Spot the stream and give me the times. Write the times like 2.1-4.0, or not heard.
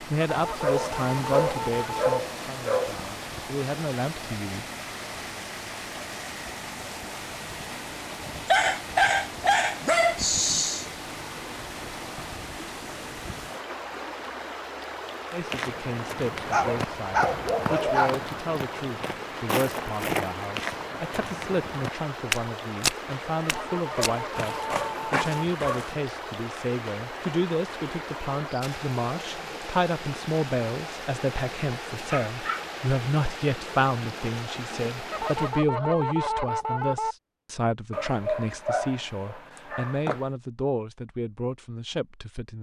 0.0-35.6.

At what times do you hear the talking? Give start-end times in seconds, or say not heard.
0.0-4.7, 15.3-42.5.